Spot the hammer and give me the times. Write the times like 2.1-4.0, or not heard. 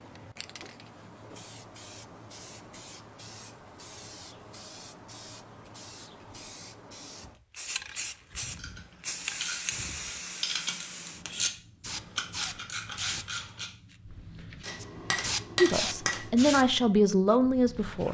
14.6-16.4.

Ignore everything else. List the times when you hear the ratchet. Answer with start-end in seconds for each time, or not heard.
8.6-13.7.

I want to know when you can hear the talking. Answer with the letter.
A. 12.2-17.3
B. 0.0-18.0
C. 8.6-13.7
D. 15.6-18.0
D.